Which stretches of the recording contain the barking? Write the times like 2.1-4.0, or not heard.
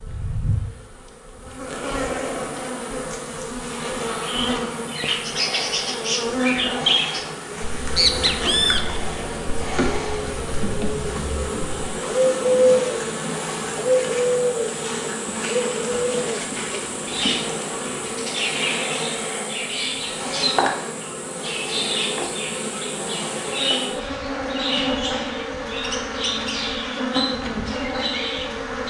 not heard.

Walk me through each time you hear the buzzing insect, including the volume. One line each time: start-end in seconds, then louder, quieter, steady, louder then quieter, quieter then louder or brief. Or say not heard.
0.0-28.8 steady.